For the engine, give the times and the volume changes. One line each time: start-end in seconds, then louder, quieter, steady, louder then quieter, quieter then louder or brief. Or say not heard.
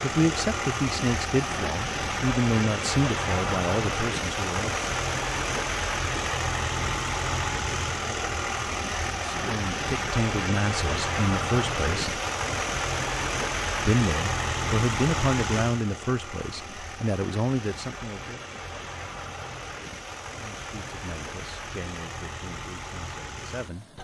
0.0-23.9 quieter.